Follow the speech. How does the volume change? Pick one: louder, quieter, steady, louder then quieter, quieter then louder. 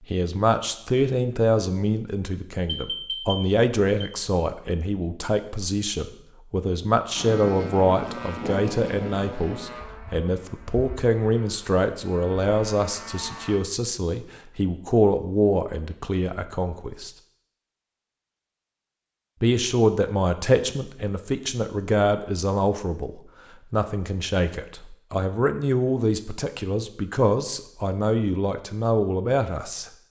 steady.